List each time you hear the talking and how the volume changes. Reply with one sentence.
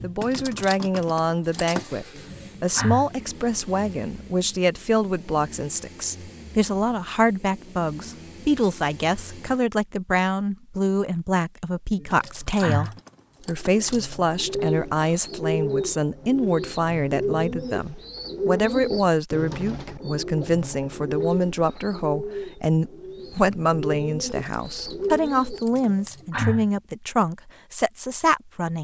You can hear the talking from 0.0 to 28.7 s, at a steady volume.